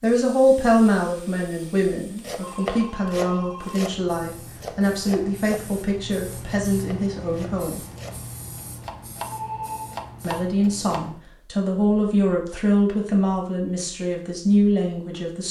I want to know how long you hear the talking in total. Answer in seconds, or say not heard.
13 s.